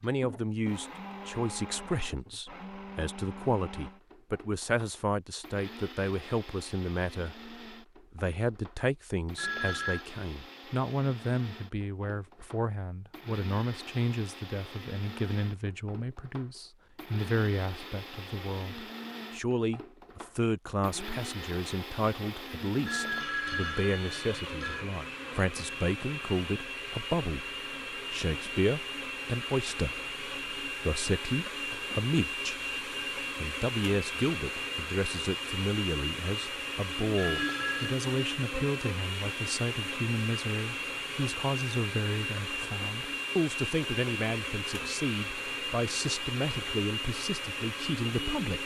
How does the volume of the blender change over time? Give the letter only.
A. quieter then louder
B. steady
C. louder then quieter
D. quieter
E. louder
E.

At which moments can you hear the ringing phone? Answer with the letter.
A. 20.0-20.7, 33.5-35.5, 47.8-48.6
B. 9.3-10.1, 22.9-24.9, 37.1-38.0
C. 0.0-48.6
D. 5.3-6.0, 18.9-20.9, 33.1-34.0
B.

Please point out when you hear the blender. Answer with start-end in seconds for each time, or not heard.
0.0-48.6.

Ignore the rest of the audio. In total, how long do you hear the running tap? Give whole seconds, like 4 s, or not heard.
not heard.